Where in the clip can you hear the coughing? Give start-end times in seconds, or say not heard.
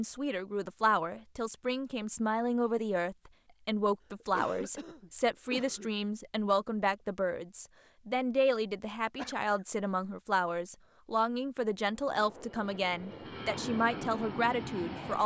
4.2-5.9, 9.2-9.7.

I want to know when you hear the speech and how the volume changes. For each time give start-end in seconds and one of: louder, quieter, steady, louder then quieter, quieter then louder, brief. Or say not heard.
0.0-15.2 steady.